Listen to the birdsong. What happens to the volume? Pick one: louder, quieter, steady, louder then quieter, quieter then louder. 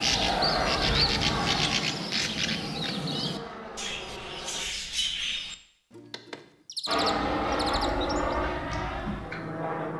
quieter.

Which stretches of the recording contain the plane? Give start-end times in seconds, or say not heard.
0.0-4.7, 6.8-9.9.